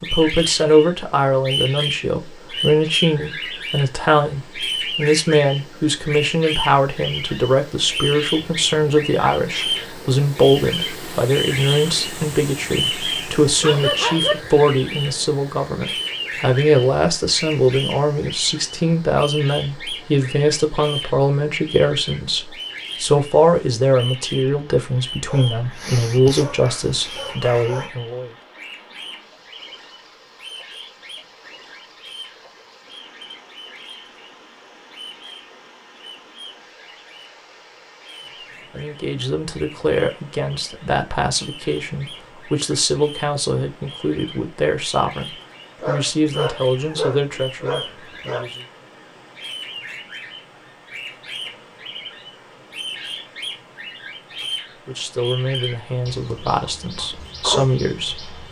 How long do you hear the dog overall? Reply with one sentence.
The dog can be heard for 6 seconds in total.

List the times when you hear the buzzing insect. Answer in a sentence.
You can't hear the buzzing insect here.